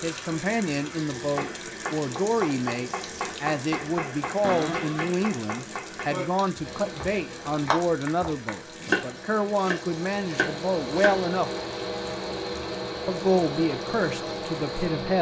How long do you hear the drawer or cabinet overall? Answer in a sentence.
The drawer or cabinet can be heard for 2 seconds in total.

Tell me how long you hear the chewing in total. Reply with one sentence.
The chewing can't be heard in this clip.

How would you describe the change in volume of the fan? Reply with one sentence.
The loudness of the fan goes up.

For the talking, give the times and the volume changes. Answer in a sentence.
The talking can be heard from 0.0 to 11.5 s, at a steady volume; and briefly from 13.1 to 15.1 s.